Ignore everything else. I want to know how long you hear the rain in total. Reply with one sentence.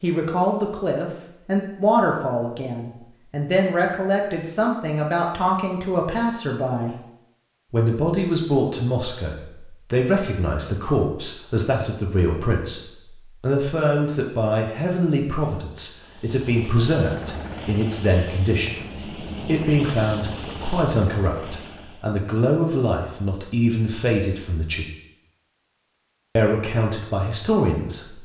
You can't hear the rain here.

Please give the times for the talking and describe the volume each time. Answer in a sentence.
You can hear the talking from 0.0 to 7.0 s, at a steady volume; from 7.7 to 24.9 s, at a steady volume; and briefly from 26.4 to 28.2 s.